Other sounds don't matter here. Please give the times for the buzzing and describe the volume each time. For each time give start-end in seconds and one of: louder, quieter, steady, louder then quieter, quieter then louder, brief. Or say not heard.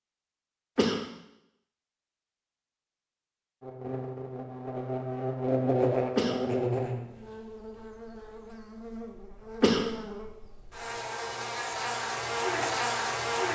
3.6-13.5 quieter then louder.